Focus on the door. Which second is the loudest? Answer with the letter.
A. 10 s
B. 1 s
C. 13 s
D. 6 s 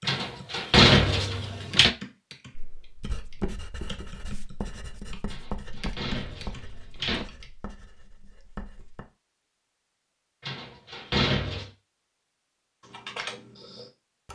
B.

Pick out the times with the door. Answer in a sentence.
You can hear the door from 0.1 to 1.9 s, from 5.3 to 7.2 s and from 10.4 to 11.7 s.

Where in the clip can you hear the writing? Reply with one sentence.
You can hear the writing from 2.5 to 9.1 s.